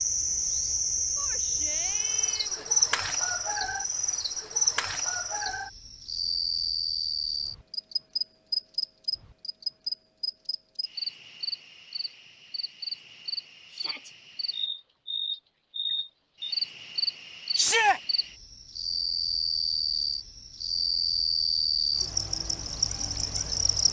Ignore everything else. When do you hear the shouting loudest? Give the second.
18 s.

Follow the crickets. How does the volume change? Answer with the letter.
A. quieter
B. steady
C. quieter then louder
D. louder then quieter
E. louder
C.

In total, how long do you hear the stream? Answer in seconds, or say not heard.
not heard.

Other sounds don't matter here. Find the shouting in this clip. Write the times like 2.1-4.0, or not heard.
1.1-2.7, 13.7-14.2, 17.6-18.0.